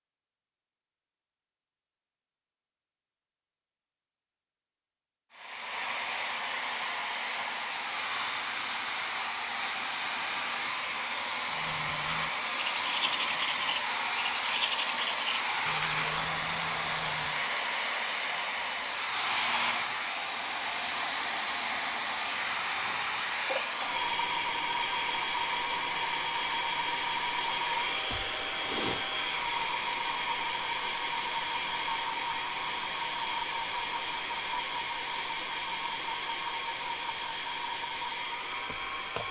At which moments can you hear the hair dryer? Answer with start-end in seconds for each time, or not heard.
5.3-39.2.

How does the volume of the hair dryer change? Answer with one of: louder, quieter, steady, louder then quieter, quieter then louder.
steady.